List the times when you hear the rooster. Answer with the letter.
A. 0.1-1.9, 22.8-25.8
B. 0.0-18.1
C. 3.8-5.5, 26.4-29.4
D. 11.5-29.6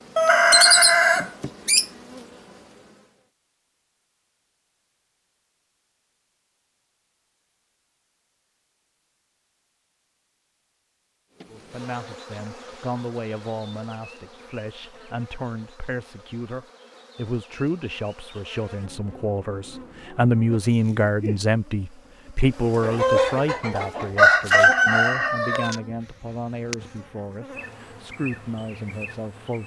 A.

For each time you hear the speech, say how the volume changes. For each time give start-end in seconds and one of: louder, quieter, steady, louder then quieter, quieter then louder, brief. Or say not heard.
11.5-29.6 louder then quieter.